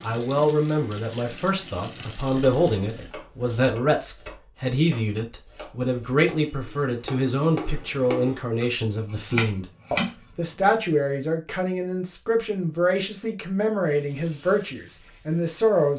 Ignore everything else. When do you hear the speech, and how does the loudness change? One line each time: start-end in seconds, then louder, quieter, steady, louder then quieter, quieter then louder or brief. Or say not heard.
0.0-15.9 steady.